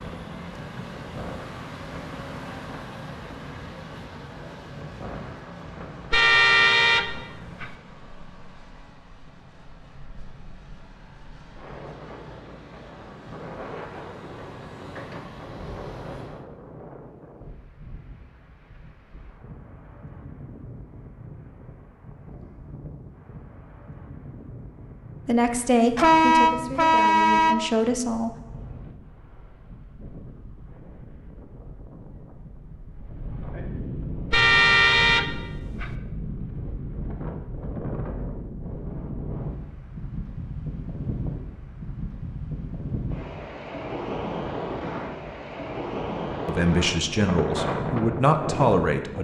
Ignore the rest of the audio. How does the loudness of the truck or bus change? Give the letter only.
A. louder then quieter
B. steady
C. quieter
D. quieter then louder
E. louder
D.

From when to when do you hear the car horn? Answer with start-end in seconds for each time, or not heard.
6.1-7.8, 25.9-27.6, 34.3-36.0.